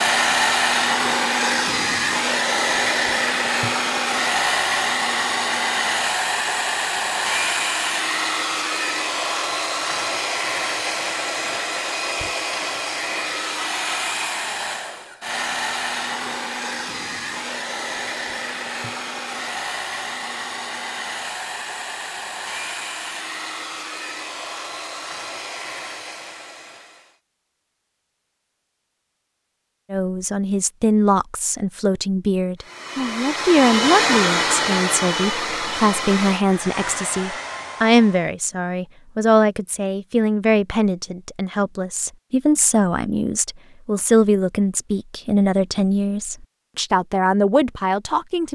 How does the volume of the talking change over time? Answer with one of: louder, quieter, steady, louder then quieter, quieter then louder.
steady.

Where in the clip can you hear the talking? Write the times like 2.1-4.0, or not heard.
29.9-48.5.